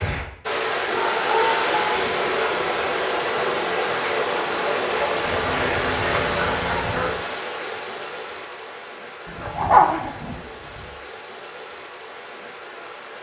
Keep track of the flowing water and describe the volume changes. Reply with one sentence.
The volume of the flowing water goes down.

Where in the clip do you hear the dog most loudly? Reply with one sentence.
The volume of the dog peaks at 10 seconds.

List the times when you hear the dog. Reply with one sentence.
The dog can be heard from 0.8 to 2.5 s, from 5.2 to 7.2 s and from 9.2 to 10.8 s.